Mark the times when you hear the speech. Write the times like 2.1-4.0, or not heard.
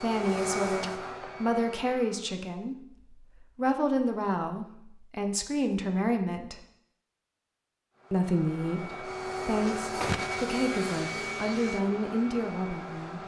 0.0-6.6, 8.1-13.2.